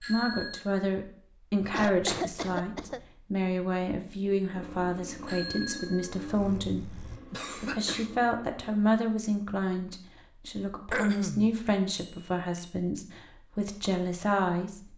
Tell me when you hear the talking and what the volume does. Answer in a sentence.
You can hear the talking from 0.0 to 14.9 s, at a steady volume.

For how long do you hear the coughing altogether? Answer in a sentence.
You can hear the coughing for 3 seconds altogether.